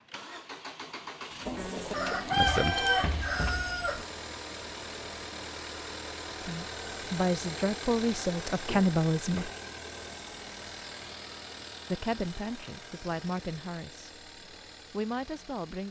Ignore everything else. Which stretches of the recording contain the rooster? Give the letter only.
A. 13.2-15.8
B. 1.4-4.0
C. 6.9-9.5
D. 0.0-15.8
B.